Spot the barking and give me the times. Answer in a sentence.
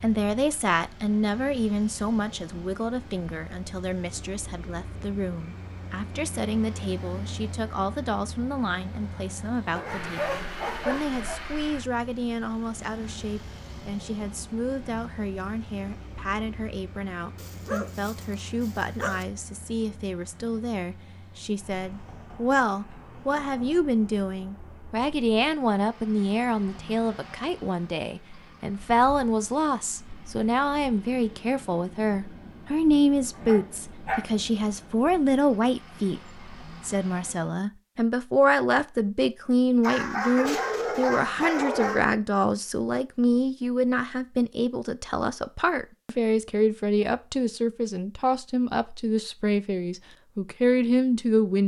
You can hear the barking from 9.8 to 11.4 s, from 17.4 to 19.2 s, from 33.3 to 34.4 s and from 39.8 to 42.1 s.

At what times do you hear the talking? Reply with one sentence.
The talking can be heard from 0.0 to 51.6 s.